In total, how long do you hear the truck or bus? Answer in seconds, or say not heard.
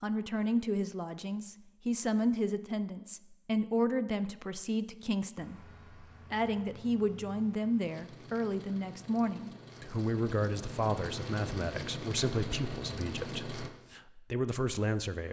8 s.